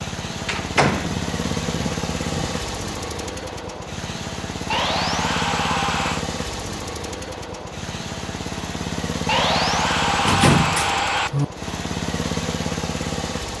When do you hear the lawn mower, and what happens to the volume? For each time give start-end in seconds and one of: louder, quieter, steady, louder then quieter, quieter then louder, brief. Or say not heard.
0.0-13.5 steady.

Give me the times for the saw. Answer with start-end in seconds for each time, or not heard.
1.2-2.6, 4.7-6.2, 9.2-11.3.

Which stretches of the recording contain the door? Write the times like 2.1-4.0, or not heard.
0.5-1.1, 10.2-11.4.